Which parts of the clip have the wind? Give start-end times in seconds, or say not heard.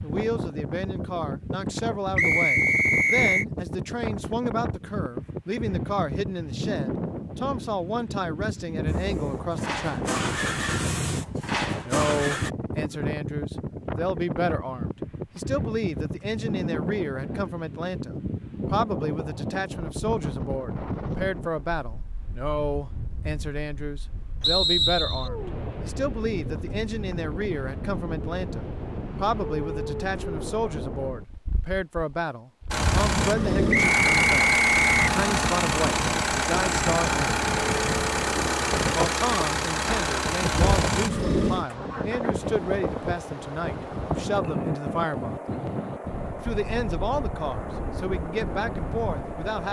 0.0-49.6.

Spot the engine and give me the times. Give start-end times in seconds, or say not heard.
8.8-12.5, 32.7-49.6.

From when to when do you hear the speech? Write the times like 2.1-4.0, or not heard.
0.0-10.1, 11.8-37.2, 38.9-45.4, 46.4-49.6.